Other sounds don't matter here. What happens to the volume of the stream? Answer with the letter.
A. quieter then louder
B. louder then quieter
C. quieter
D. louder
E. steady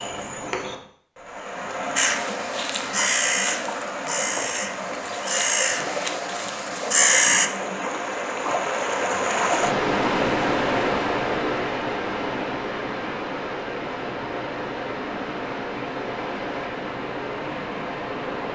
B.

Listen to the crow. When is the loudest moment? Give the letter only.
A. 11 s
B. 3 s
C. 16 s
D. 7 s
D.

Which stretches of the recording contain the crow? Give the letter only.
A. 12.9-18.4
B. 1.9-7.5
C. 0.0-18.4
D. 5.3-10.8
B.